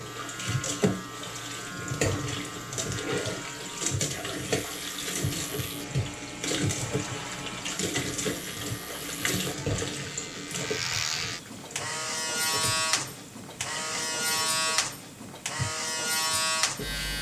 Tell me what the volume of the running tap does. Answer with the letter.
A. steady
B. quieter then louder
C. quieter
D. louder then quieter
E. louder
C.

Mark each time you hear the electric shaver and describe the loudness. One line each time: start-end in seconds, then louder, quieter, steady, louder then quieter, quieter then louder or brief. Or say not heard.
0.0-17.1 louder.